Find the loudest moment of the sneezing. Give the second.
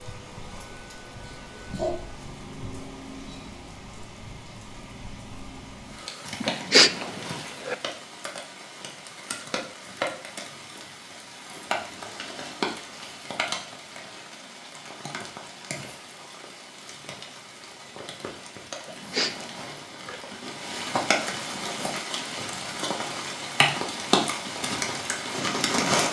7 s.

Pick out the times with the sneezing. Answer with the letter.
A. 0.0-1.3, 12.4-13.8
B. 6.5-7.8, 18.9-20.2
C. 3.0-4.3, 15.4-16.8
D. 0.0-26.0
B.